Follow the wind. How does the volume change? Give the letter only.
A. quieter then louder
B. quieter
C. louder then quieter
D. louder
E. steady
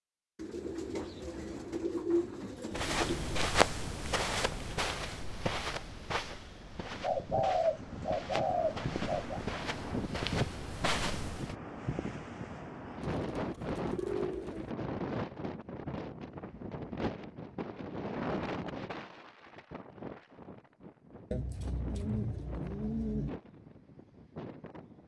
B.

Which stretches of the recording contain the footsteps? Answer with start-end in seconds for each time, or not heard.
2.7-11.6.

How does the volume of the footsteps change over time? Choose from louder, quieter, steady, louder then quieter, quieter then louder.
quieter then louder.